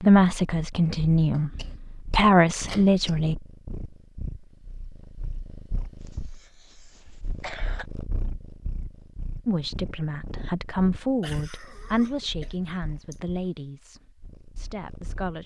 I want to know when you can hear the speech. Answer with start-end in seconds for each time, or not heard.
0.0-3.4, 9.4-15.4.